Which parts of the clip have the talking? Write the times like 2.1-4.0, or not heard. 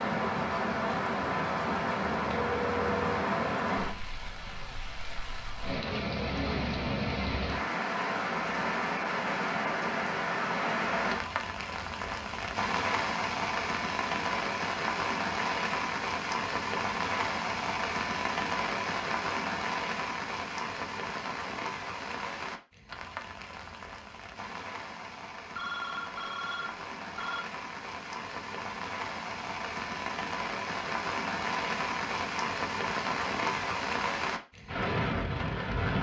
not heard.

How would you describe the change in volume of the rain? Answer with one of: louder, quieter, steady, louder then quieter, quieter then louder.
quieter then louder.